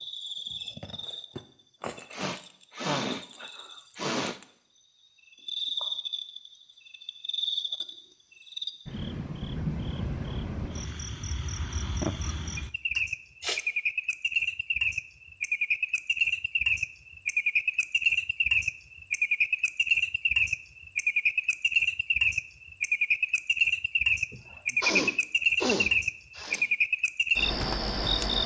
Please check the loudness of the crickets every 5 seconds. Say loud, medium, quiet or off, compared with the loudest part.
quiet, medium, medium, loud, loud, loud.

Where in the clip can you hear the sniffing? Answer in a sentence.
The sniffing can be heard from 2.1 to 4.4 s, from 12.9 to 13.6 s and from 24.3 to 26.6 s.